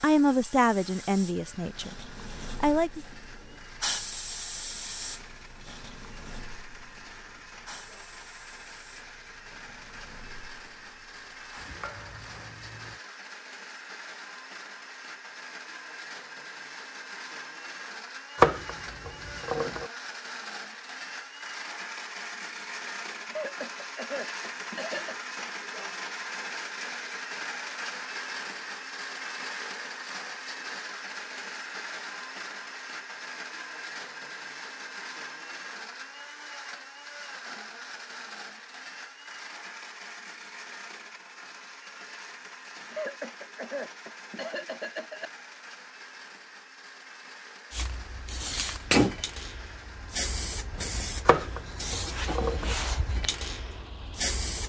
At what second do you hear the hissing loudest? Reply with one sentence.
The loudest moment of the hissing is at 49 seconds.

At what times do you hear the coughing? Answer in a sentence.
You can hear the coughing from 23.3 to 25.1 s and from 42.9 to 45.3 s.